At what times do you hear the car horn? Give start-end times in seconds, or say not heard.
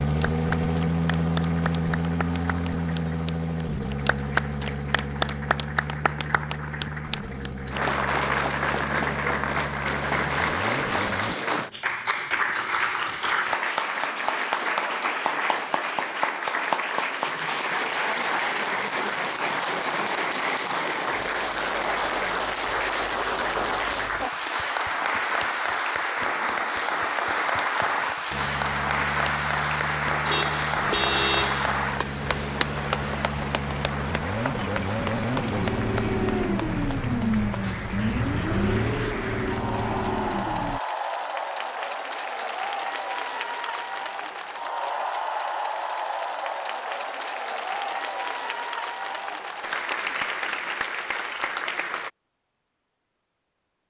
30.2-31.6.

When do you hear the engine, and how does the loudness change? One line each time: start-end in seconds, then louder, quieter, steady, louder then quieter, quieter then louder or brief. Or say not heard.
0.0-11.3 quieter
28.3-40.8 louder.